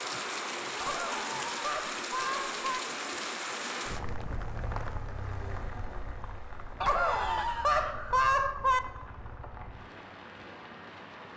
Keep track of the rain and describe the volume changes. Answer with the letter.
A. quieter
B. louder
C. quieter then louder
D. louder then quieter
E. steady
A.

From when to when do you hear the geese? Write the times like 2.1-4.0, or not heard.
0.8-2.8, 6.8-8.8.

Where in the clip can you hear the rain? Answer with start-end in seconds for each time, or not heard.
0.0-11.3.